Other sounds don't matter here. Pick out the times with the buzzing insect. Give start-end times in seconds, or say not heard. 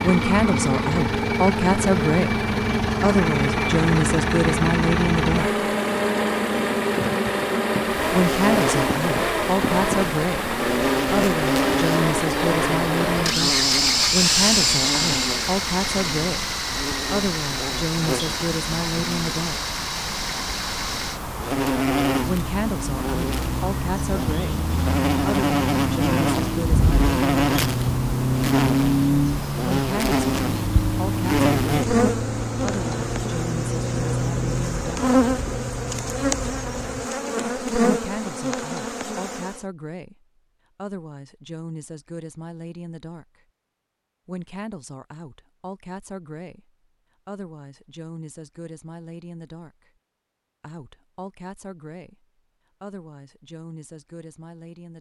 0.0-39.6.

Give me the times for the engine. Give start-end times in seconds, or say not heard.
0.0-37.0.